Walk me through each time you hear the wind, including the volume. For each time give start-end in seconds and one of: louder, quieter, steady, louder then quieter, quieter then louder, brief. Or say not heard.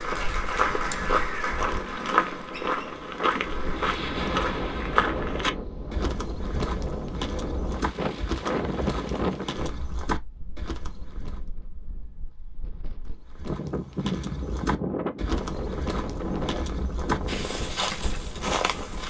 0.0-19.0 louder.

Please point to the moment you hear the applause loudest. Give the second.
1 s.